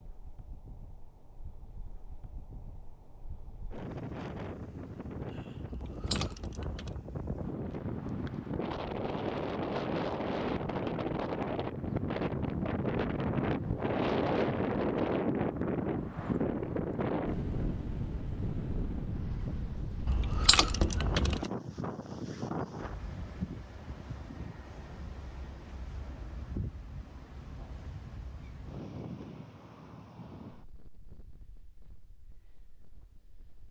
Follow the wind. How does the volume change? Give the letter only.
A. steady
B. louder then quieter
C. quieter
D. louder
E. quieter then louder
B.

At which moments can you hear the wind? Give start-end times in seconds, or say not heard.
0.0-33.6.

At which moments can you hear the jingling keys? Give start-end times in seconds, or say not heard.
5.7-7.0, 20.1-21.4.